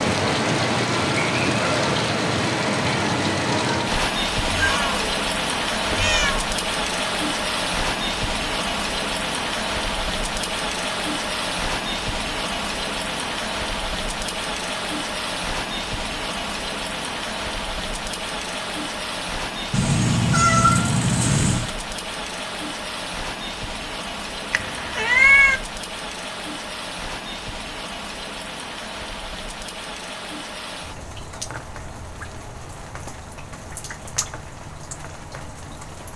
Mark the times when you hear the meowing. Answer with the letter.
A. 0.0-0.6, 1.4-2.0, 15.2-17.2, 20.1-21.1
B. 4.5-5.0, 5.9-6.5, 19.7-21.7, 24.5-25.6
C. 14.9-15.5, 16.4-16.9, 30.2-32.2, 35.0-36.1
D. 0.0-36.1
B.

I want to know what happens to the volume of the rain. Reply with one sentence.
The volume of the rain goes down.